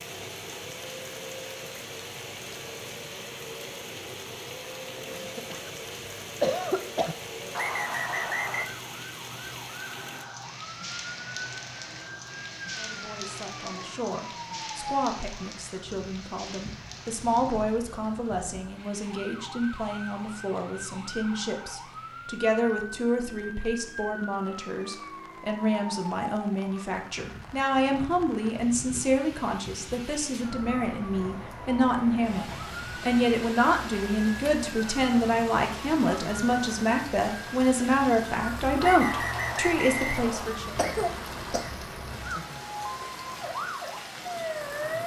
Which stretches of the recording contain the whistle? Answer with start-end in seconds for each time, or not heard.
7.5-8.7, 38.8-40.6.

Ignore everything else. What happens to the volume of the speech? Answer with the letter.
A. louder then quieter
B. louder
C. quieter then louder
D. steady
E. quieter
B.